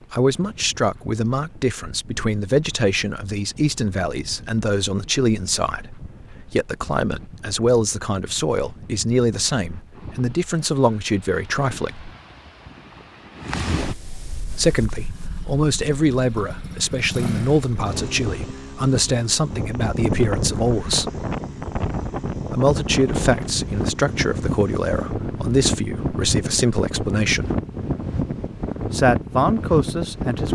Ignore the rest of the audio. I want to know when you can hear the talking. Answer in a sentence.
You can hear the talking from 0.1 to 12.1 s, from 14.5 to 21.1 s, from 22.5 to 27.5 s and from 28.9 to 30.5 s.